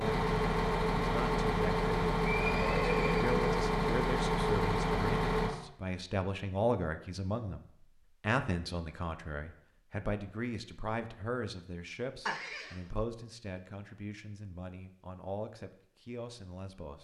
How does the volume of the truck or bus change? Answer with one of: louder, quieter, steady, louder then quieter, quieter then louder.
steady.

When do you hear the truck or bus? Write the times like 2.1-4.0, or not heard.
0.0-5.5.